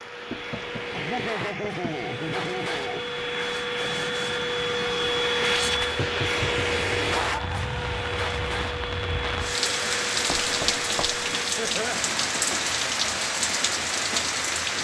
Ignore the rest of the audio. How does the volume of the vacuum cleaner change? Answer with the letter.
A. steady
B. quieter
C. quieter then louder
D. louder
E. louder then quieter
E.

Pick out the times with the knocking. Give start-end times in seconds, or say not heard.
0.3-1.9, 6.0-6.7, 10.3-11.2.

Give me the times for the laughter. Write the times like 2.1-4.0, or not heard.
0.9-3.0, 7.2-8.0, 11.6-12.0.